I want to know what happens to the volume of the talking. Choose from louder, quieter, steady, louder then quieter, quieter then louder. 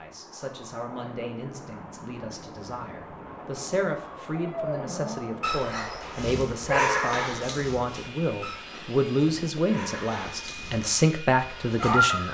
louder.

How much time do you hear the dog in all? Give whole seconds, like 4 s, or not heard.
8 s.